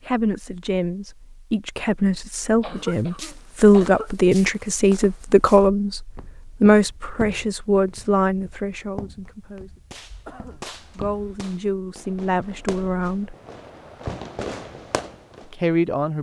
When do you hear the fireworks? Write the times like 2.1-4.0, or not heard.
9.9-15.5.